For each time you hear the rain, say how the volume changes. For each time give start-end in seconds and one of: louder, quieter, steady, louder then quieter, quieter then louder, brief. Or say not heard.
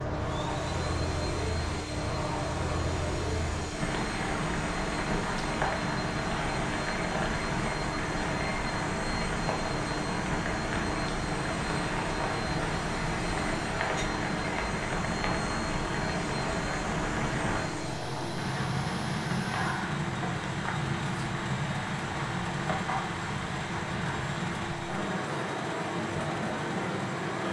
0.0-27.4 steady.